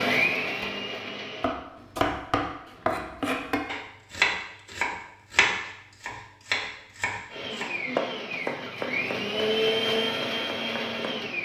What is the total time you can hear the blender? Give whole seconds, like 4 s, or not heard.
6 s.